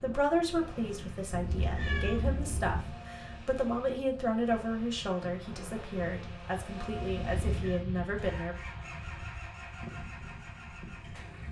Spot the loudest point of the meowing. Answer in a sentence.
The loudest moment of the meowing is at 2 seconds.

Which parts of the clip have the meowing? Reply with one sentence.
You can hear the meowing from 1.3 to 2.9 s and from 7.2 to 7.8 s.